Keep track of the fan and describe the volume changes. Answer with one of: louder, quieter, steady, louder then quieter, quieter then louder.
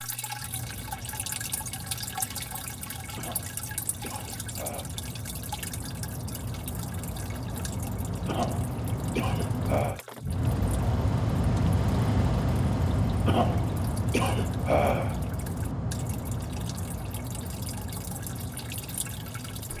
louder then quieter.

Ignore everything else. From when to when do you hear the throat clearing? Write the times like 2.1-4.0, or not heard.
3.1-4.9, 8.2-10.0, 13.2-15.2.